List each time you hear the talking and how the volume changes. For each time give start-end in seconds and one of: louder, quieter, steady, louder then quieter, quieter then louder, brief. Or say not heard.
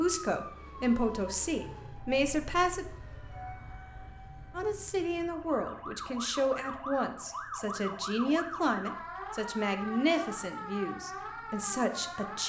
0.0-2.9 brief
4.5-12.4 steady.